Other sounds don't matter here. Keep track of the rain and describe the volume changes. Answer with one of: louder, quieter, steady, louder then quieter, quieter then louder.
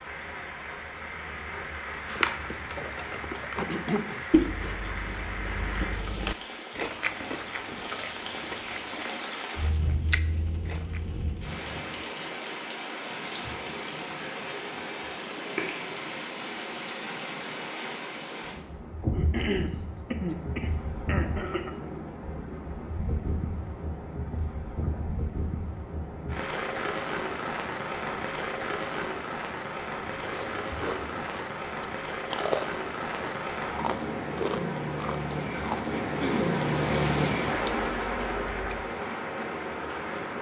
louder.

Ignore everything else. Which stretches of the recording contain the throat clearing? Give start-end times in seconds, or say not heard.
3.5-4.4, 19.1-21.8, 35.9-36.5.